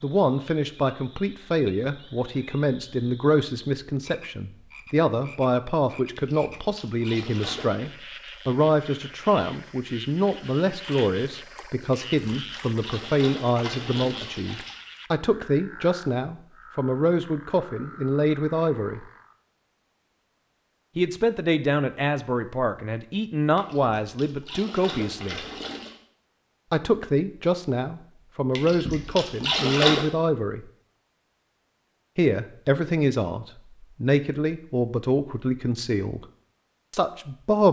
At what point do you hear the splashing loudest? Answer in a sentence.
The loudest moment of the splashing is at 30 seconds.